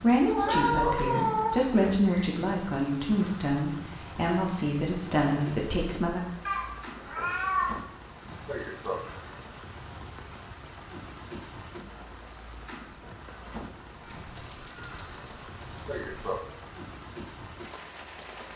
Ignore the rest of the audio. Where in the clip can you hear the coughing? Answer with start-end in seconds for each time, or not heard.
0.2-1.0, 8.2-9.0, 15.7-16.4.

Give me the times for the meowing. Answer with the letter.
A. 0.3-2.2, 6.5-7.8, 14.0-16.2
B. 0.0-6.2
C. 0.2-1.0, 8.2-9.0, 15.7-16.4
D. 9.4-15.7
A.